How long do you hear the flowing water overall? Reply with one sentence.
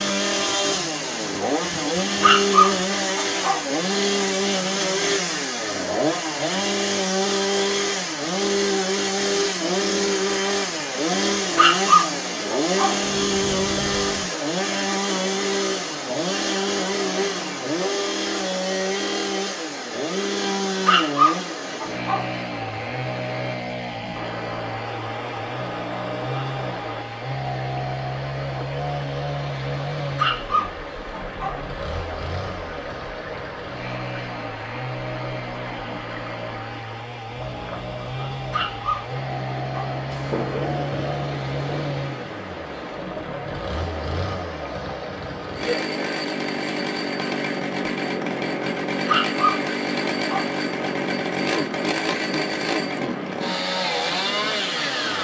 You can hear the flowing water for 55 seconds altogether.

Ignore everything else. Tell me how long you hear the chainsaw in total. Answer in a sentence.
You can hear the chainsaw for 55 seconds altogether.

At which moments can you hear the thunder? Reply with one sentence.
You can hear the thunder from 13.0 to 14.2 s and from 40.1 to 41.9 s.